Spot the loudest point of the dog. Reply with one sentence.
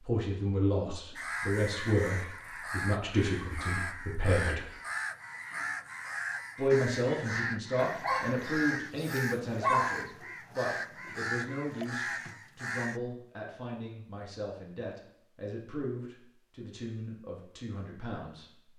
The volume of the dog peaks at 10 seconds.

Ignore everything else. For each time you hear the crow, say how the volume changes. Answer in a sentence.
You can hear the crow from 1.1 to 13.0 s, at a steady volume.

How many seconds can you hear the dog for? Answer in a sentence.
The dog can be heard for 2 seconds in total.